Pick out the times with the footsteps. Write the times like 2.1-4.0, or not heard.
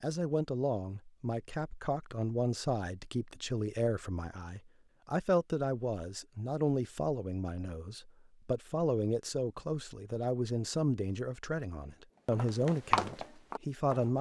12.3-14.1.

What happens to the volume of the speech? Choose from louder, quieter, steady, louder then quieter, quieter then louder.
steady.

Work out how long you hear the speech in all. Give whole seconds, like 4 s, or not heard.
14 s.